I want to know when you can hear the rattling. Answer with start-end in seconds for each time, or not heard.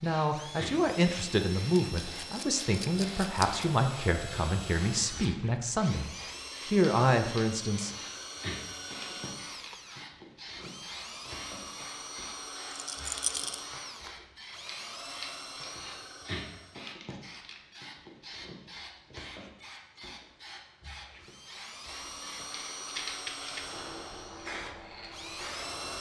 1.8-3.6, 12.7-13.6, 22.9-23.9.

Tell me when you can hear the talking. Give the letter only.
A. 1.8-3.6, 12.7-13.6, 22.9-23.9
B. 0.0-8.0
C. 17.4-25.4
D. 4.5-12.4
B.